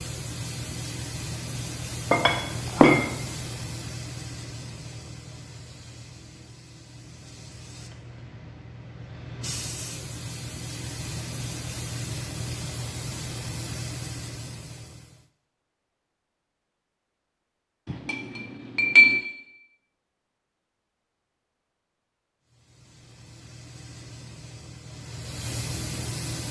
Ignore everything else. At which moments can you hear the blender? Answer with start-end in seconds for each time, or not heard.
not heard.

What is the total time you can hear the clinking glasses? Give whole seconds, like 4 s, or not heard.
2 s.